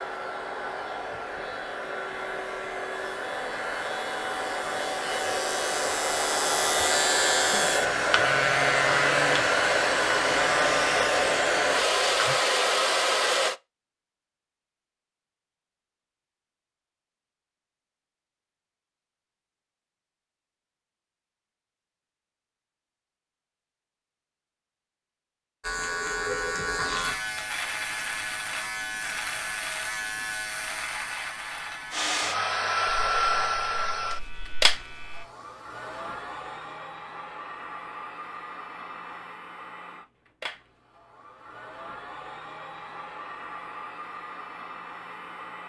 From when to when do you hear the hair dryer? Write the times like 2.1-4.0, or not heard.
0.0-13.6, 31.9-45.6.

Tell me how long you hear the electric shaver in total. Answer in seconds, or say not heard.
22 s.